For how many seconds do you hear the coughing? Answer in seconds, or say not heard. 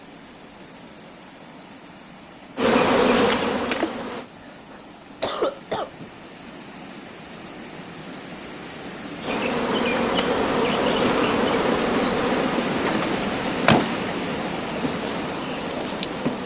2 s.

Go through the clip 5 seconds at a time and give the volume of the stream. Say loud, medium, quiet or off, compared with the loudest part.
quiet, medium, loud, loud.